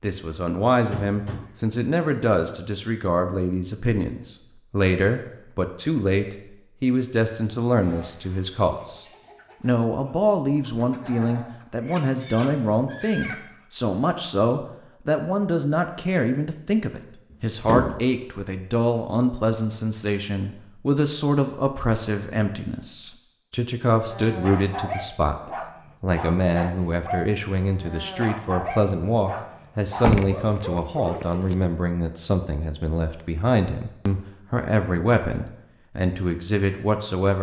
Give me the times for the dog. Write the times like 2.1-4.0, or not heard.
24.1-31.4.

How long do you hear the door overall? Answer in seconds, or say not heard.
3 s.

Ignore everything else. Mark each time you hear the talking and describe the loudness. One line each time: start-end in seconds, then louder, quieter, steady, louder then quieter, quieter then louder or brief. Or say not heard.
0.0-37.3 steady.